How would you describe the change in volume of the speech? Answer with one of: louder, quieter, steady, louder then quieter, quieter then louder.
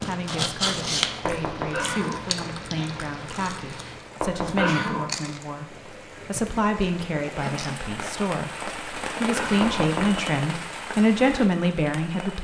louder.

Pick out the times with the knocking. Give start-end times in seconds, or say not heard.
1.2-1.9, 4.2-4.8, 9.6-10.2.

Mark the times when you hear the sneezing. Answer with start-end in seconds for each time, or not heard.
1.7-2.3, 4.4-5.2, 9.3-9.9.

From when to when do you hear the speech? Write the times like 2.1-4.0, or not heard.
0.1-12.4.